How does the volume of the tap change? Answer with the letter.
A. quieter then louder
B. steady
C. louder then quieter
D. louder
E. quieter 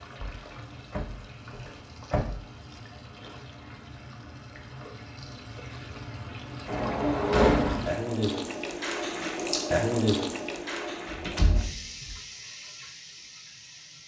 C.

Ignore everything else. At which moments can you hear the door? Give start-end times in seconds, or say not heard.
0.2-2.4, 6.7-7.9, 11.1-12.2.